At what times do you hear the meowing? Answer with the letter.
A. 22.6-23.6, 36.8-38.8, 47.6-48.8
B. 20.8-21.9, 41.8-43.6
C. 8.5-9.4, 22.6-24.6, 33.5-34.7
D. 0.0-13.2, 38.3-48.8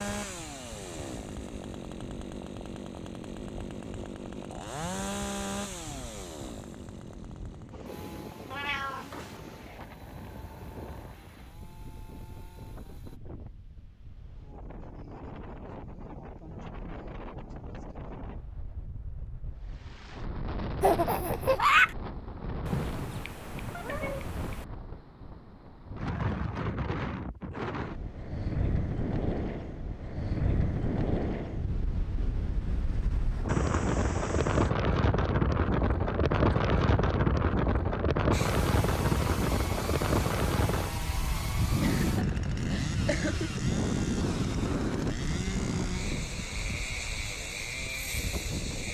C.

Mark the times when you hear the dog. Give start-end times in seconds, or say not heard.
not heard.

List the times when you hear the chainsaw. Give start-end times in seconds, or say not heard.
0.0-13.2, 38.3-48.8.